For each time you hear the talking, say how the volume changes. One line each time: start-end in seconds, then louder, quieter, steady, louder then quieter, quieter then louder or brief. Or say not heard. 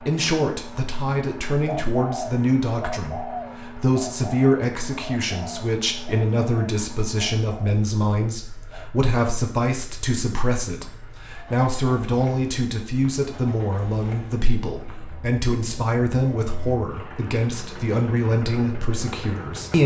0.0-19.8 steady.